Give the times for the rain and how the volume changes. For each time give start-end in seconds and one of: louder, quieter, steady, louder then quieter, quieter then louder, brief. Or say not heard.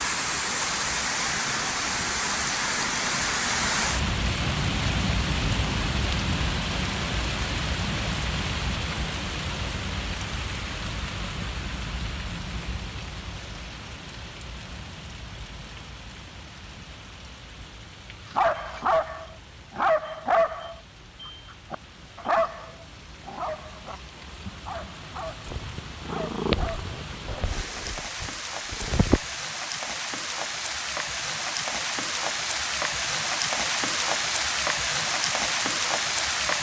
0.0-36.5 quieter then louder.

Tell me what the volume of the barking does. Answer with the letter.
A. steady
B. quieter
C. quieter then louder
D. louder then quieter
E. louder
B.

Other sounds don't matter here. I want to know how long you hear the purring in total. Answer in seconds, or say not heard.
4 s.